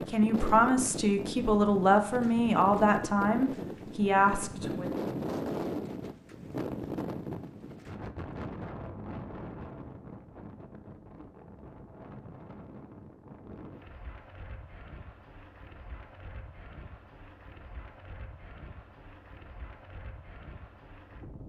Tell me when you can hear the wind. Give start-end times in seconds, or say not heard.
0.0-21.4.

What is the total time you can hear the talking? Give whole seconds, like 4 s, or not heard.
5 s.